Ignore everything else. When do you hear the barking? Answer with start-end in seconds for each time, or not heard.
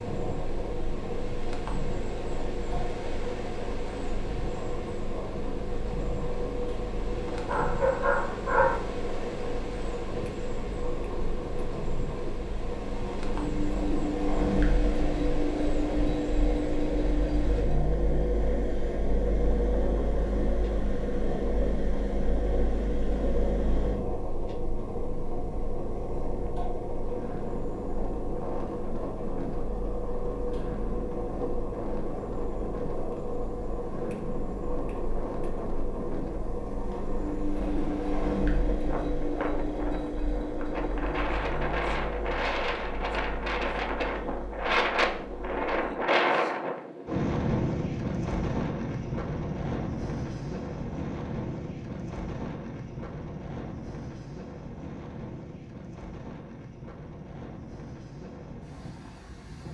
7.3-8.8.